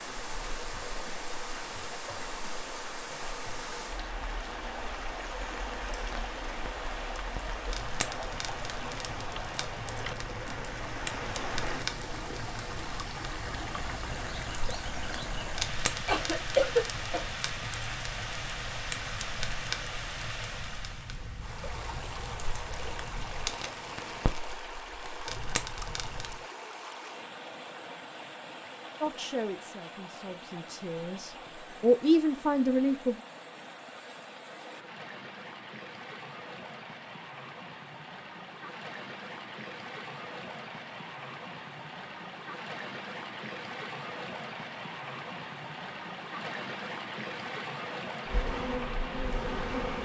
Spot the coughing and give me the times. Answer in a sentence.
The coughing can be heard from 15.8 to 17.2 s.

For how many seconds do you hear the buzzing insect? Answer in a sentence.
You can hear the buzzing insect for 2 seconds altogether.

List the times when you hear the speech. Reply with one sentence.
You can hear the speech from 29.0 to 33.2 s.